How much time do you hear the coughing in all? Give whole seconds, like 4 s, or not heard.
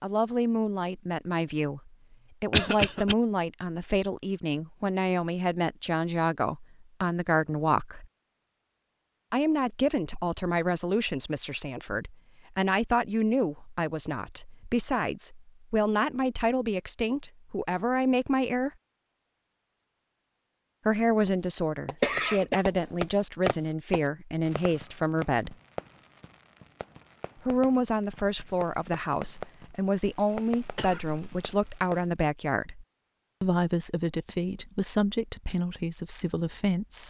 3 s.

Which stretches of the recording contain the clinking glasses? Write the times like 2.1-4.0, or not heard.
not heard.